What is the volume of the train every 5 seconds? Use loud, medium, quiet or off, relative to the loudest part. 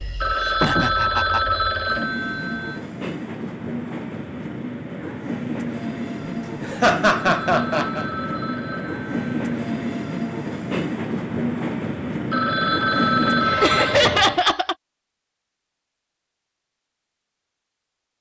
medium, loud, loud, off.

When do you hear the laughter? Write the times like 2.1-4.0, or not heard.
0.5-1.4, 6.2-8.1, 13.6-14.8.